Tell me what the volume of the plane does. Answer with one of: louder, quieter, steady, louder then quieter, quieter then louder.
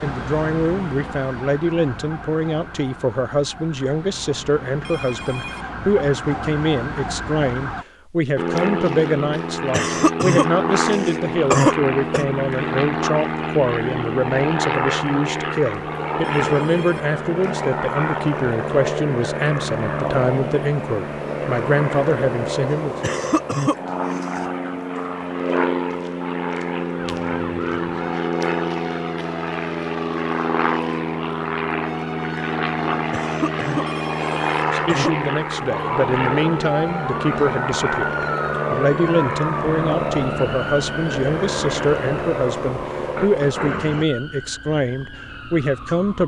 steady.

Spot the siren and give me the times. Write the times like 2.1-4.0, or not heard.
0.0-7.8, 26.9-46.2.